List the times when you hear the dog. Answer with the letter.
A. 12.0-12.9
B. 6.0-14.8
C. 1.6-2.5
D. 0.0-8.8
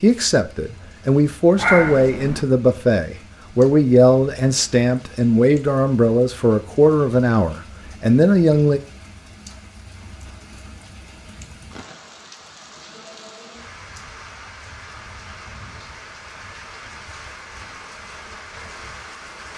C.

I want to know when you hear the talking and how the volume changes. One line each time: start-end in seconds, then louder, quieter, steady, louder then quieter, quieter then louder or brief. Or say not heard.
0.0-8.8 steady.